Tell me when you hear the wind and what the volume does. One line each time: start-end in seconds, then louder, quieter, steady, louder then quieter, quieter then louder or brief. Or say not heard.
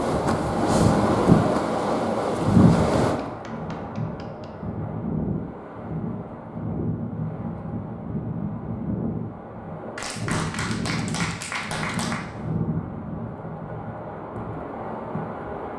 0.0-15.7 quieter.